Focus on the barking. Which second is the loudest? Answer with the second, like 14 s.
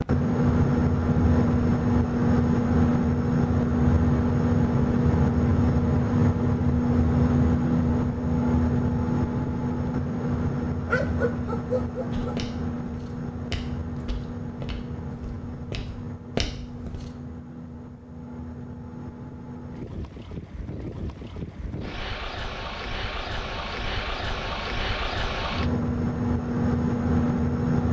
11 s.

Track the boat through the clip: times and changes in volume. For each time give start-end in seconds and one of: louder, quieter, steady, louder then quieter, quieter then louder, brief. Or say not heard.
0.0-27.8 quieter then louder.